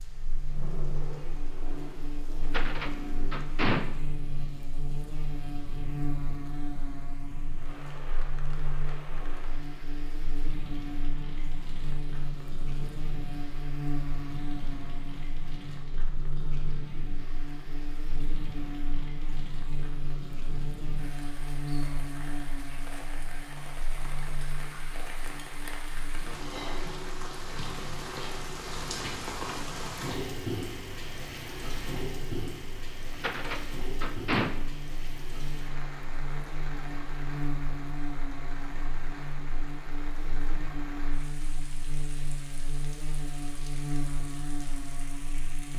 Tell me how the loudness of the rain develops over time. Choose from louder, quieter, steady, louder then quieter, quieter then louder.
louder then quieter.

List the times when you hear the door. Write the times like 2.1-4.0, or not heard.
2.5-3.9, 33.1-34.5.